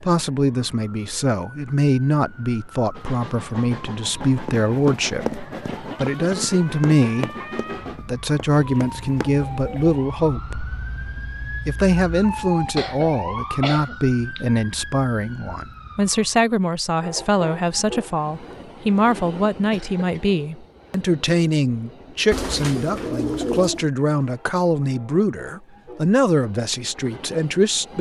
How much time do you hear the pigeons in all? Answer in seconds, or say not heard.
3 s.